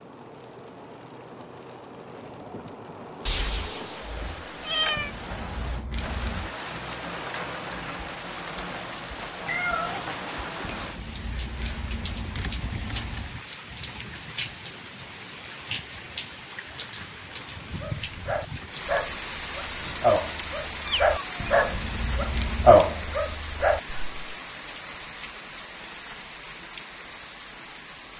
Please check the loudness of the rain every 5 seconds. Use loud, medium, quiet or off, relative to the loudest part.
medium, loud, loud, loud, loud, medium.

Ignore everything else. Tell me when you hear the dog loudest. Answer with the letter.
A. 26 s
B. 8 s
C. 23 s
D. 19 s
C.